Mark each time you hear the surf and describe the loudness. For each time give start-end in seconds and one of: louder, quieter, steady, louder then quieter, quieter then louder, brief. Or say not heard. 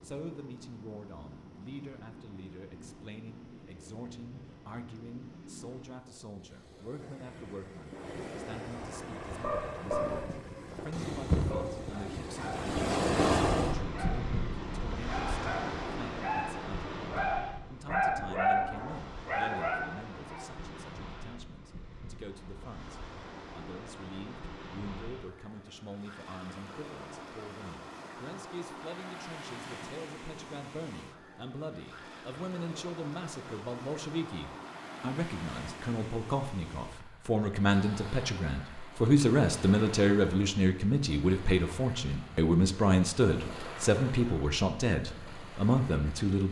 0.0-46.4 louder then quieter.